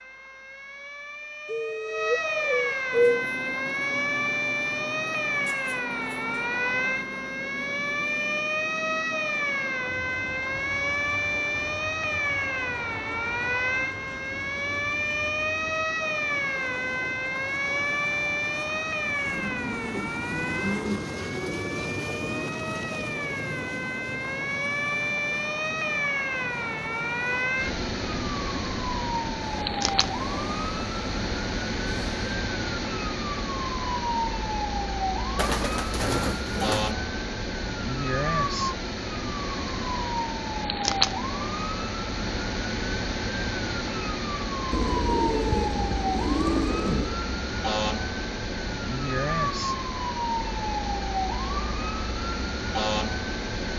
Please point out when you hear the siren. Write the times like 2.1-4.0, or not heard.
0.0-53.7.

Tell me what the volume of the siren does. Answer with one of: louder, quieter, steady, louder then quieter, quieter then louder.
steady.